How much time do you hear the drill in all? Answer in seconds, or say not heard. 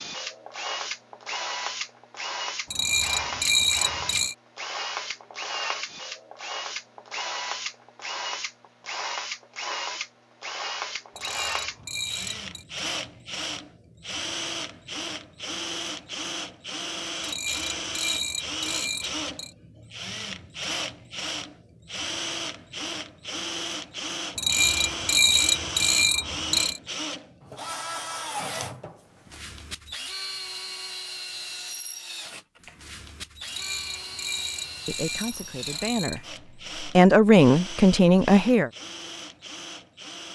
40 s.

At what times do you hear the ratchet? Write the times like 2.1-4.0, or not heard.
2.7-4.3, 11.2-12.7, 17.2-19.5, 24.4-26.8, 33.5-36.2.